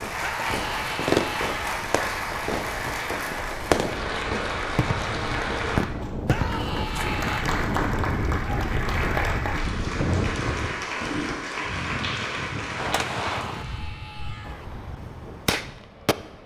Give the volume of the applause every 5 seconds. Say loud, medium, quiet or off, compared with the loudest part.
loud, loud, loud, off.